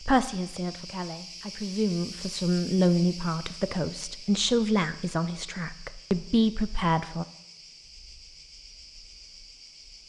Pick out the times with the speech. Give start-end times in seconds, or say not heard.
0.0-7.2.